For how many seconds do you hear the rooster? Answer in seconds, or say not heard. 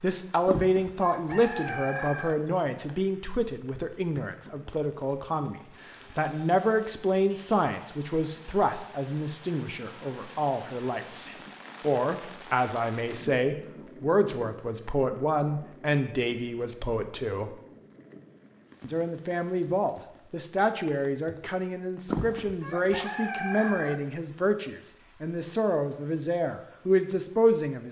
4 s.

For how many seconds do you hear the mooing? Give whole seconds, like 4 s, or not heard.
not heard.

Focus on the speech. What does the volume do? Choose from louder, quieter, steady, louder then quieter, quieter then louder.
steady.